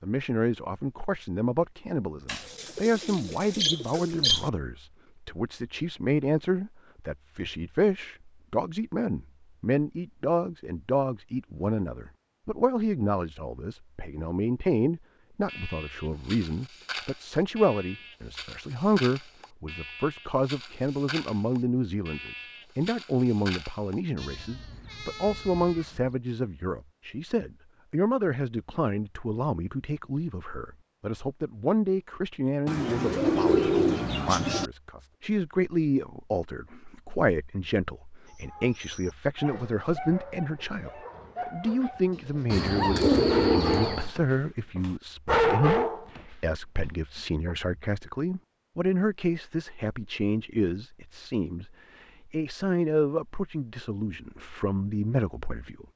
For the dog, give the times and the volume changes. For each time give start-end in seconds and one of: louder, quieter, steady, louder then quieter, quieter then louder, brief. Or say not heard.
38.2-47.5 louder.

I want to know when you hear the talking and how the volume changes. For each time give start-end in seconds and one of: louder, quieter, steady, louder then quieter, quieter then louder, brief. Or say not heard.
0.0-55.9 steady.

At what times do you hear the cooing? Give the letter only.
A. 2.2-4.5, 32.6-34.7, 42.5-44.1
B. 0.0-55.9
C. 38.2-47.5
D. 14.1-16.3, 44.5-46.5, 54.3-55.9
A.